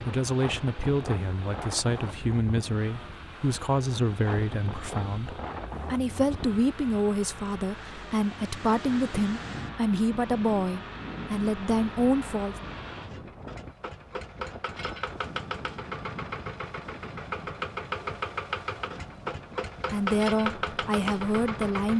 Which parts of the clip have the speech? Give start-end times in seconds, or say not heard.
0.1-12.6, 19.9-21.9.